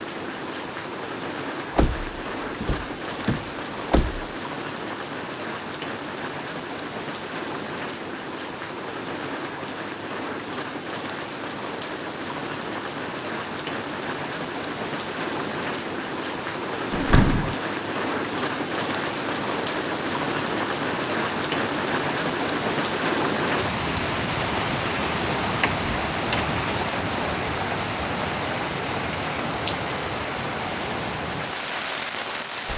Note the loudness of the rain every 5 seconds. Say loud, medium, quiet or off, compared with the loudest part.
medium, medium, medium, loud, loud, loud, loud.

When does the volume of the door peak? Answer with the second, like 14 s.
17 s.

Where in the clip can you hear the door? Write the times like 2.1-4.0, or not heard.
1.8-4.2, 16.9-17.6, 25.6-26.6.